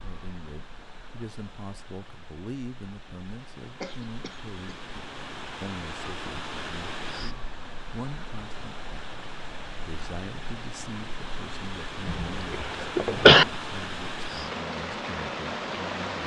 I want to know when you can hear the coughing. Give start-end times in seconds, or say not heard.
3.8-4.9, 12.1-13.4.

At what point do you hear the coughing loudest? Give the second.
13 s.